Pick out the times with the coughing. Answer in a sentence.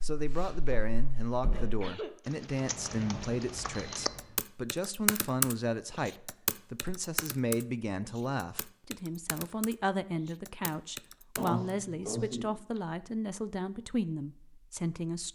The coughing can be heard from 1.1 to 2.1 s and from 11.3 to 12.8 s.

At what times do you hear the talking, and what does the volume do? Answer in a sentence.
The talking can be heard from 0.0 to 15.2 s, at a steady volume.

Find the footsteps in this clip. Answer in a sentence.
You can't hear the footsteps here.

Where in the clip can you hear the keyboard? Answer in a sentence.
The keyboard can be heard from 2.2 to 11.7 s.